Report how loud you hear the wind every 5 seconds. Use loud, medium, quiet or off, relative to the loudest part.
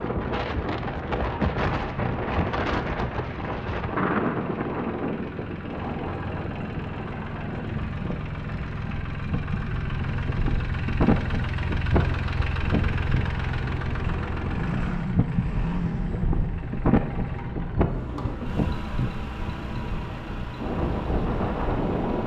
loud, medium, loud, loud, loud.